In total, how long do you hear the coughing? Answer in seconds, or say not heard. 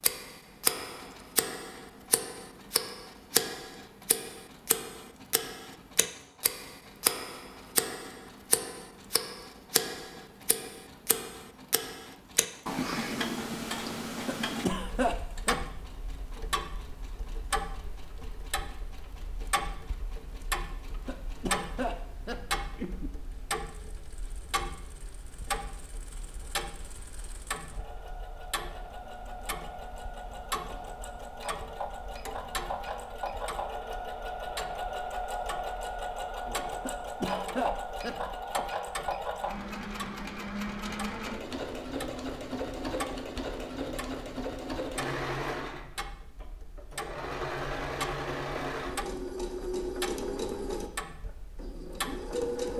5 s.